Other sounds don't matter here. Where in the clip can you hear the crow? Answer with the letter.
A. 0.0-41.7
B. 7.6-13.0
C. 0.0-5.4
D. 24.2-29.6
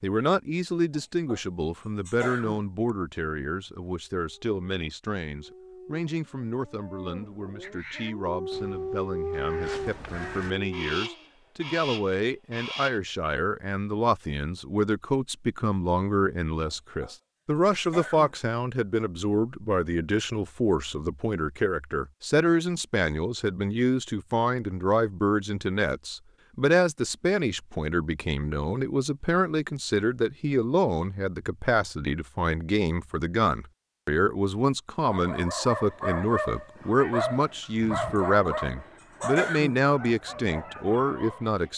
B.